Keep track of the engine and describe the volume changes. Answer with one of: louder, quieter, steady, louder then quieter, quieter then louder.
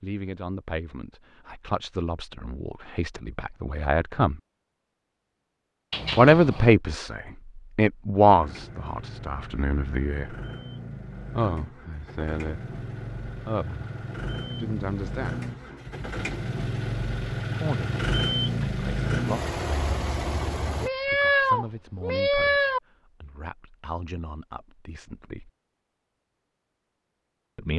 louder.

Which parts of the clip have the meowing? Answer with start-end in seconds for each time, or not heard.
5.9-6.7, 20.8-22.8.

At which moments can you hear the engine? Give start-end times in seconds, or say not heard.
8.2-20.9.